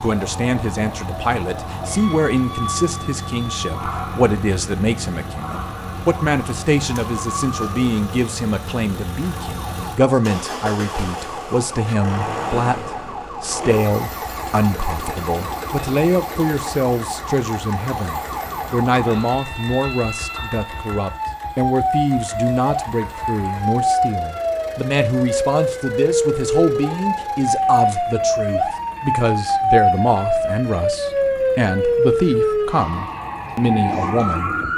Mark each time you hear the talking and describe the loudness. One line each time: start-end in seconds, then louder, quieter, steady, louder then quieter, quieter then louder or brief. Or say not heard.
0.0-34.5 steady.